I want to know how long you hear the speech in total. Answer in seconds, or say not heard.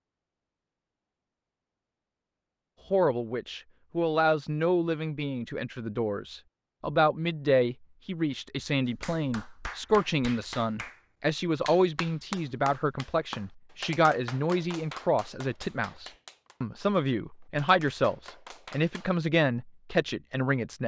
18 s.